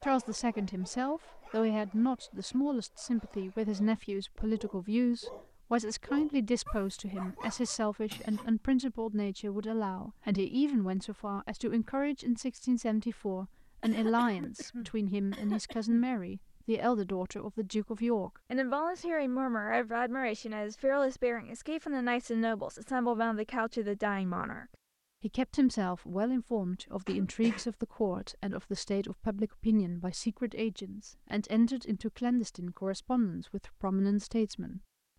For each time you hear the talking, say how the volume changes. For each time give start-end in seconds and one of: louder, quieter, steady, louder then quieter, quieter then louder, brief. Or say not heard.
0.0-35.1 steady.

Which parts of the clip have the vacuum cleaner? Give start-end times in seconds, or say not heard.
not heard.